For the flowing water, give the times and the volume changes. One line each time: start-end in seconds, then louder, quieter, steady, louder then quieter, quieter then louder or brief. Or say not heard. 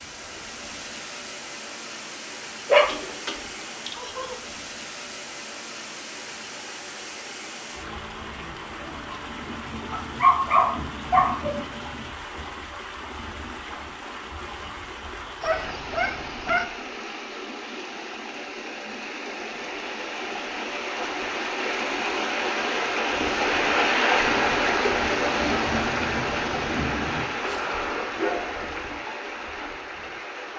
0.0-30.5 louder.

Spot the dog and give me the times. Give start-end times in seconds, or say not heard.
2.7-4.3, 9.9-11.6, 15.4-16.6, 27.4-28.9.